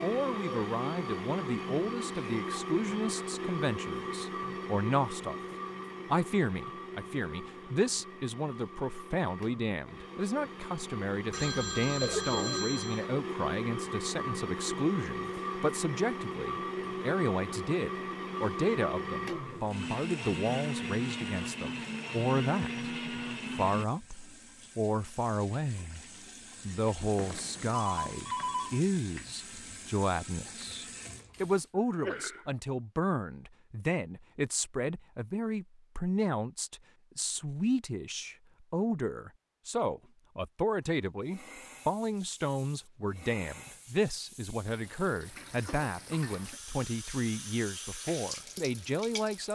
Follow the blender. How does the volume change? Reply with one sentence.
The volume of the blender goes down, then up.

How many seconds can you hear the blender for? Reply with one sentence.
You can hear the blender for 24 seconds altogether.